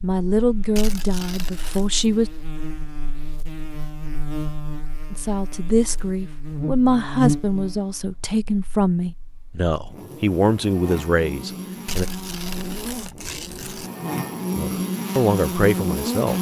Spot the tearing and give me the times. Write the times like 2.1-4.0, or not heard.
0.8-1.9, 11.8-13.9.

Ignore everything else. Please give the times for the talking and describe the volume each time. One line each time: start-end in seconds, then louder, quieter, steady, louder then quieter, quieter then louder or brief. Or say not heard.
0.0-2.3 brief
5.1-12.1 steady
14.6-16.3 brief.